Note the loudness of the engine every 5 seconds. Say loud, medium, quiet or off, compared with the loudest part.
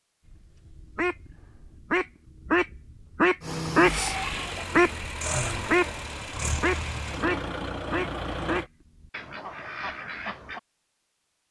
loud, loud, off.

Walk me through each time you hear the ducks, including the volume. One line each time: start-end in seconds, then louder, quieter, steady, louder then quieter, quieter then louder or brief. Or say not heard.
0.2-10.6 louder then quieter.